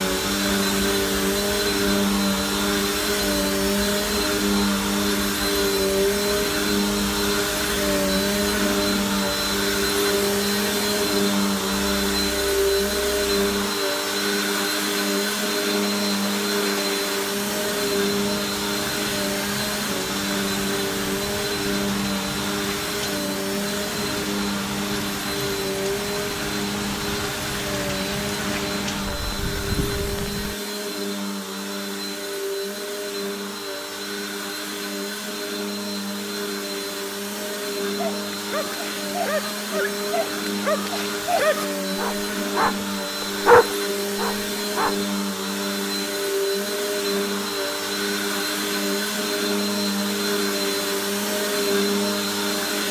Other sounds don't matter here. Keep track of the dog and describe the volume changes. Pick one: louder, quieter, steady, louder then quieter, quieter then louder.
louder.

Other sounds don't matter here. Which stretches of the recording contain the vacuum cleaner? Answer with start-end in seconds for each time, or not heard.
0.0-52.8.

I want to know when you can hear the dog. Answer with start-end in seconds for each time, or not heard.
37.9-45.0.